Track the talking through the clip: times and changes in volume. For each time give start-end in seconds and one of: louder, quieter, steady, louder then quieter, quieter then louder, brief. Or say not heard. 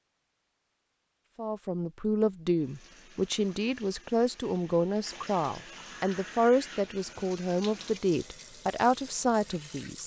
1.4-10.0 steady.